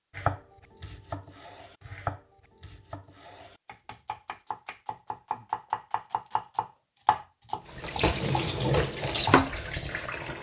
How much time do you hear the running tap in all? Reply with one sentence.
The running tap can be heard for 3 seconds in total.